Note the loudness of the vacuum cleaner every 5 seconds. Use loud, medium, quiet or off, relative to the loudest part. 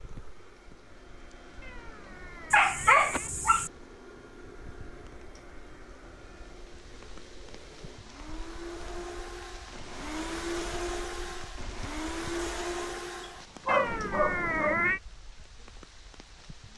quiet, medium, loud, off.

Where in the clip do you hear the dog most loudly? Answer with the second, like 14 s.
3 s.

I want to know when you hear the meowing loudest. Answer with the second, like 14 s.
15 s.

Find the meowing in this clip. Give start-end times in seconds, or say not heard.
1.6-3.3, 13.7-15.0.